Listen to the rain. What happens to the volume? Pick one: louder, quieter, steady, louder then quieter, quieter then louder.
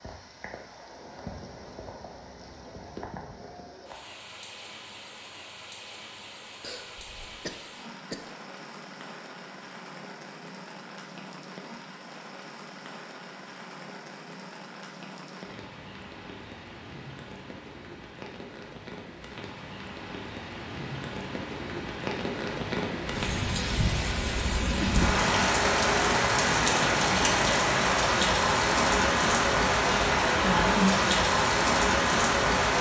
louder.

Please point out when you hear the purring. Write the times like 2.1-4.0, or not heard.
not heard.